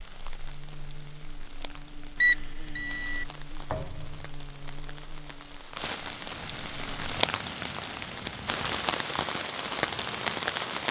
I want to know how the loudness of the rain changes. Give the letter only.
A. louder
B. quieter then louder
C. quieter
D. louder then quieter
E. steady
A.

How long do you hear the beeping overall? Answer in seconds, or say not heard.
2 s.